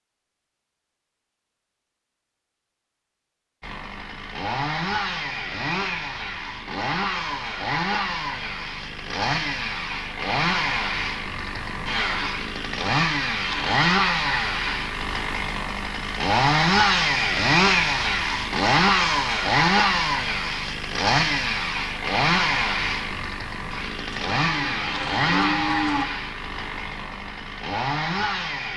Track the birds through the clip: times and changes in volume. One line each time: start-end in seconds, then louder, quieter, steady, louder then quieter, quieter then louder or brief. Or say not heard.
not heard.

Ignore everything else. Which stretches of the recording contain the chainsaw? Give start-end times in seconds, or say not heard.
3.6-28.7.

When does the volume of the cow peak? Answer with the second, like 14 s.
26 s.